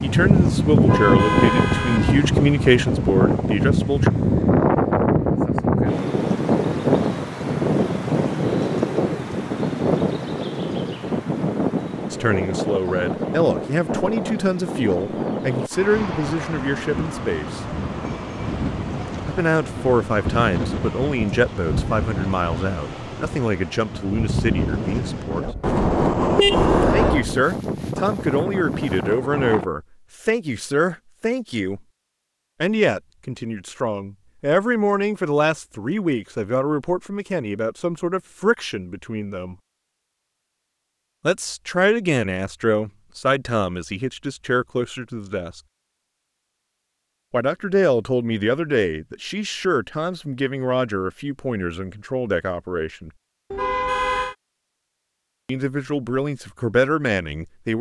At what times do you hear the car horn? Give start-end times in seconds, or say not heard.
0.8-2.2, 25.6-27.2, 53.5-54.4.